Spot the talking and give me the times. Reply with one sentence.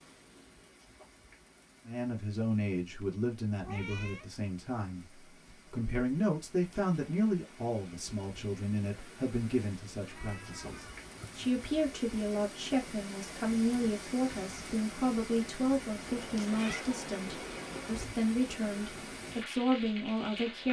You can hear the talking from 1.9 to 20.6 s.